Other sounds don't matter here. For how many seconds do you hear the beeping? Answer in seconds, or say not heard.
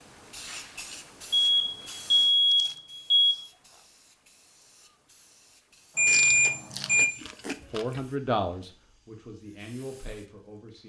3 s.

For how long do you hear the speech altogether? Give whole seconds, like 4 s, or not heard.
3 s.